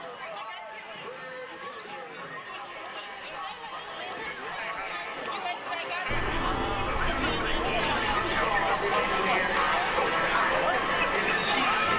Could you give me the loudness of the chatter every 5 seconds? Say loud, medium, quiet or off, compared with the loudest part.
quiet, loud, loud.